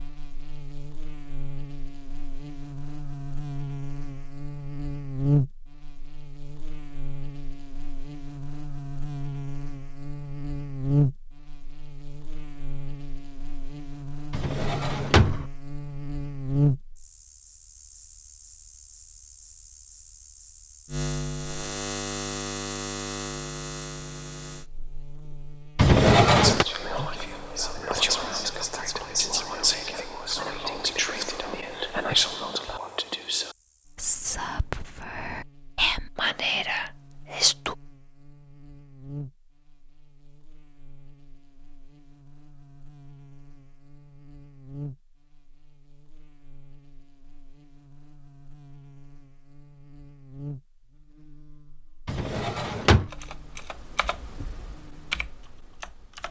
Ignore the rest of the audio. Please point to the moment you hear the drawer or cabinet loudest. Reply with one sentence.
The loudest moment of the drawer or cabinet is at 26 seconds.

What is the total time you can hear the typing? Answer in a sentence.
The typing can be heard for 3 seconds in total.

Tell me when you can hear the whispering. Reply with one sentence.
You can hear the whispering from 26.4 to 37.8 s.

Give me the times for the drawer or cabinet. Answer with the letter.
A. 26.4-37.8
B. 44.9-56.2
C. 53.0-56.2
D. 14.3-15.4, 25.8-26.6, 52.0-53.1
D.